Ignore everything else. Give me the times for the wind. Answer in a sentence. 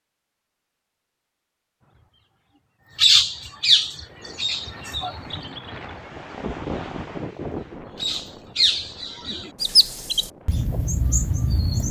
The wind can be heard from 3.9 to 11.8 s.